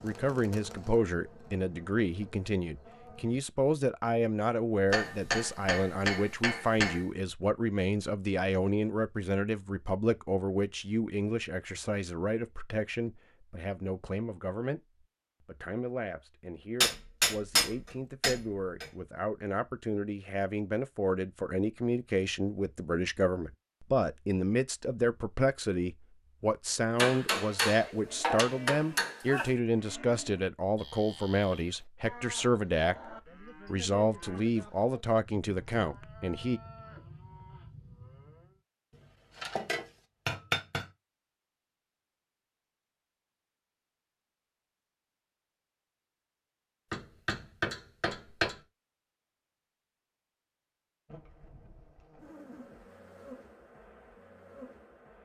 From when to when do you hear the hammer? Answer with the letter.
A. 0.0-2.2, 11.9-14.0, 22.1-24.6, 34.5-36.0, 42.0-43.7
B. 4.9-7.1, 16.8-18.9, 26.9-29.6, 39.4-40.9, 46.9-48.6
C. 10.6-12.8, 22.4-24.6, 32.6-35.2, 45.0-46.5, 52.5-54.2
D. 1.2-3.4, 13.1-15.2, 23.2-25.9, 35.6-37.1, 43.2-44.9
B.